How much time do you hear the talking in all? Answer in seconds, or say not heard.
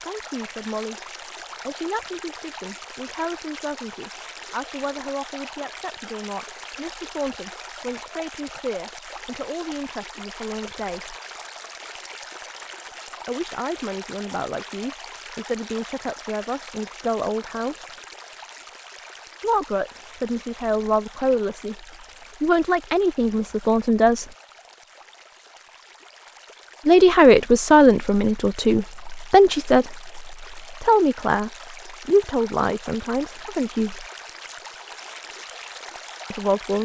28 s.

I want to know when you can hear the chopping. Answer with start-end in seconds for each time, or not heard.
not heard.